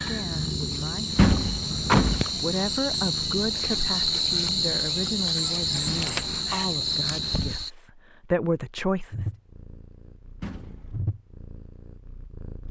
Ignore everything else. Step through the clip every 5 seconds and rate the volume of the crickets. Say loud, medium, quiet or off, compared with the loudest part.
loud, loud, off.